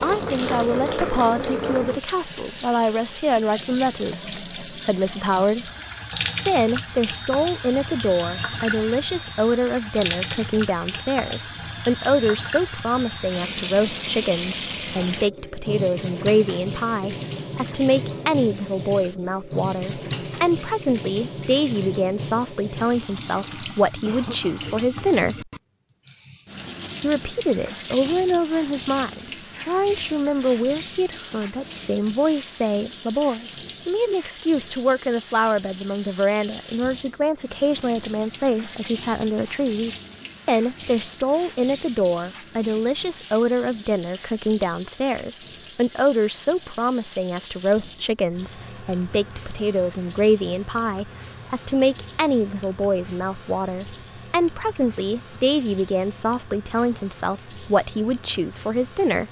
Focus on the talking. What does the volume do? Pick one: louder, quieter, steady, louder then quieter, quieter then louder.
steady.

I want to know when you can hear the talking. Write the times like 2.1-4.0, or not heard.
0.0-5.7, 6.5-25.4, 27.0-59.2.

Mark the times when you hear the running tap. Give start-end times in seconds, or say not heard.
0.0-59.2.